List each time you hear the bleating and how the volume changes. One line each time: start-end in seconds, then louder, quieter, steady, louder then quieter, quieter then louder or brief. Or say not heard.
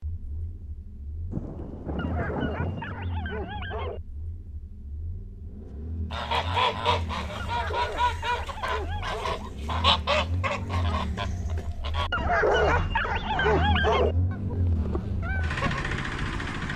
not heard.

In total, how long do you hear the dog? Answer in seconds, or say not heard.
6 s.